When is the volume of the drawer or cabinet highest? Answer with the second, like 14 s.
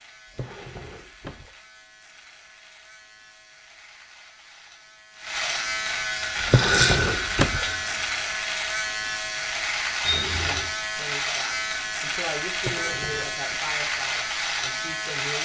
7 s.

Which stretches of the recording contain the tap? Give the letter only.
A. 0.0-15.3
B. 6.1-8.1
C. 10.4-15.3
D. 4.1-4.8
B.